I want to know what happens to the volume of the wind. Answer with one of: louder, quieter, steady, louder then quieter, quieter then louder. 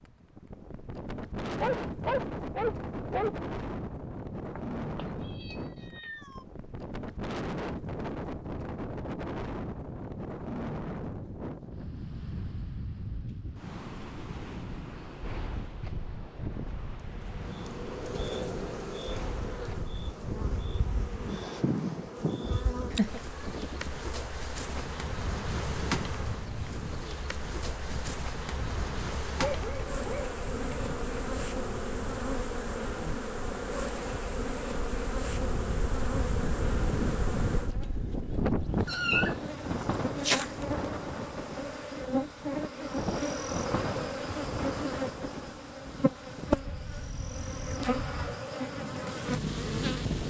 steady.